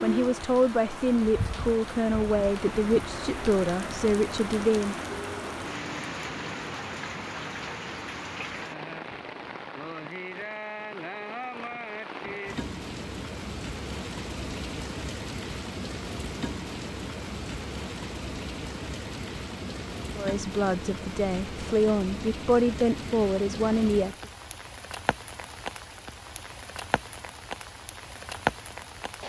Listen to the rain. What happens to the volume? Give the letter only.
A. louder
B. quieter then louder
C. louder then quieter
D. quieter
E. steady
E.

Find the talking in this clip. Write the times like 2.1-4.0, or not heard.
0.0-5.0, 20.1-24.2.